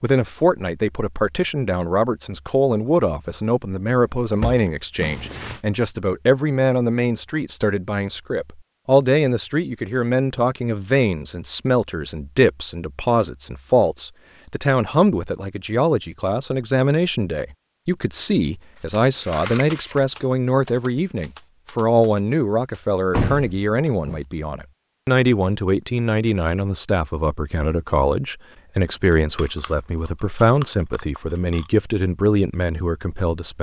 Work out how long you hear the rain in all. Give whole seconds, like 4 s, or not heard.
not heard.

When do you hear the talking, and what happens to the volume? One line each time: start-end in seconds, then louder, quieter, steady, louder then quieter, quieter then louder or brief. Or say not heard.
0.0-33.5 steady.